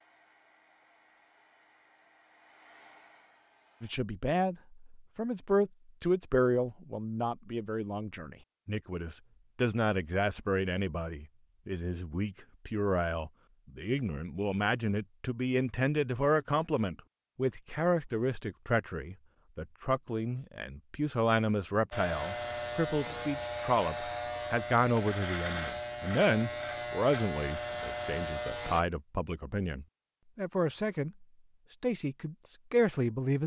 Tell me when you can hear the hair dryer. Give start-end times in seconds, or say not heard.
0.0-4.0.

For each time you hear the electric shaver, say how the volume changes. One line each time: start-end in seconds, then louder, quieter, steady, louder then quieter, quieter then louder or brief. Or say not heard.
21.9-28.9 steady.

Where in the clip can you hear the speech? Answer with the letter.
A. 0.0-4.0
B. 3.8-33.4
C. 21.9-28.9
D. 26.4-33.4
B.